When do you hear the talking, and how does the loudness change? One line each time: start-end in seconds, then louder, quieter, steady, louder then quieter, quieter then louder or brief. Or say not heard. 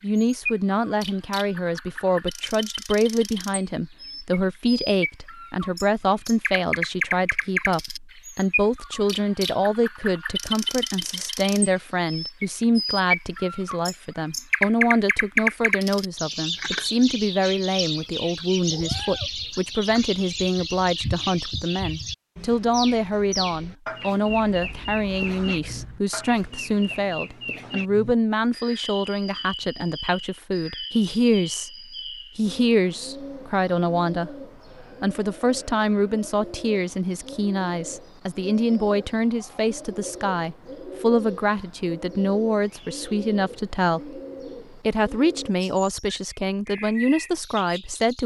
0.0-31.7 steady
32.4-48.2 steady.